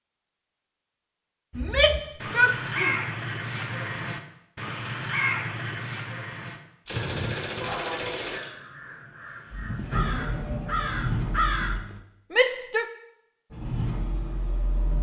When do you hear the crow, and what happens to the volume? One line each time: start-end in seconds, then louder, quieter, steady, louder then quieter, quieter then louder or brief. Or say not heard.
1.5-12.0 quieter then louder.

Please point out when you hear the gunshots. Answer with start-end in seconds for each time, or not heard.
6.8-8.4.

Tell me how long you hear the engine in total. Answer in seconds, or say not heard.
4 s.